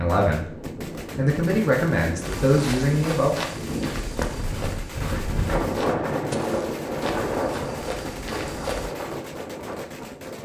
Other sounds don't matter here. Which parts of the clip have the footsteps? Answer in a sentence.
The footsteps can be heard from 2.2 to 8.9 s.